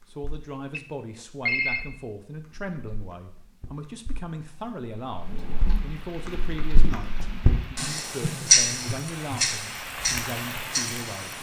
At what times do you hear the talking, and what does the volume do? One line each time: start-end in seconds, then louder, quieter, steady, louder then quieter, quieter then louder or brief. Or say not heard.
0.1-11.3 steady.